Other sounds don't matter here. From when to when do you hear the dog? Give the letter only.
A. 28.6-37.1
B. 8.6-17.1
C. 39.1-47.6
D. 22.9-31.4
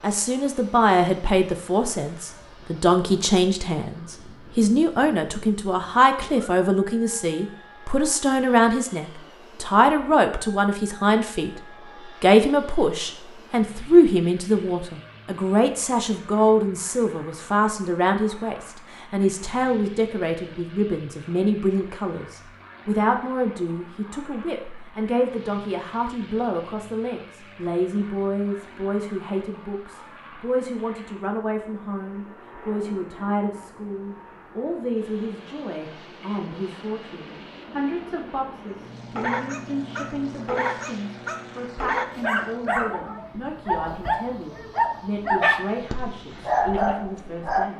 C.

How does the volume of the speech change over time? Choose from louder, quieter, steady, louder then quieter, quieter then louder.
quieter.